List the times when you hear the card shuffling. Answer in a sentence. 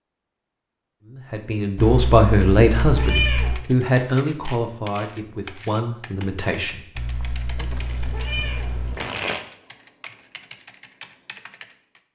You can hear the card shuffling from 7.7 to 9.4 s.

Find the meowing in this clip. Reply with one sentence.
You can hear the meowing from 1.8 to 3.6 s and from 7.0 to 8.9 s.